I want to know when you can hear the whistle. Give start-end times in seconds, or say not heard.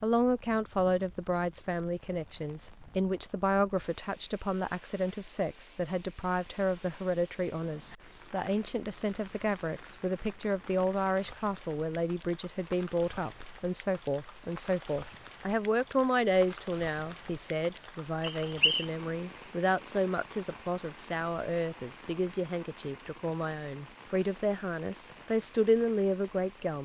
18.2-18.9.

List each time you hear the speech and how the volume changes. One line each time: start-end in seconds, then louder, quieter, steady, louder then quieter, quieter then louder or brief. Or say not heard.
0.0-26.8 steady.